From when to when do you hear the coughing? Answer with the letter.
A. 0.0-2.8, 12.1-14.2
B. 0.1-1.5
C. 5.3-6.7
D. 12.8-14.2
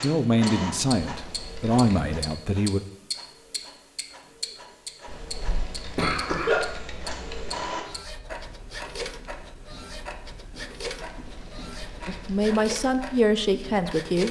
C.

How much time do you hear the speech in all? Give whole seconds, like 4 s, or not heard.
5 s.